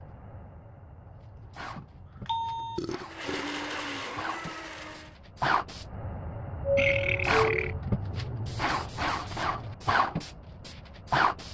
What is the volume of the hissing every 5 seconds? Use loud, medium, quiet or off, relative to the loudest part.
quiet, loud, loud.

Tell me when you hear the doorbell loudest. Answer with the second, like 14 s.
7 s.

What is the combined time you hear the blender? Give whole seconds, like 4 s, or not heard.
2 s.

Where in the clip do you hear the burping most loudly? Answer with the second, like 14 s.
7 s.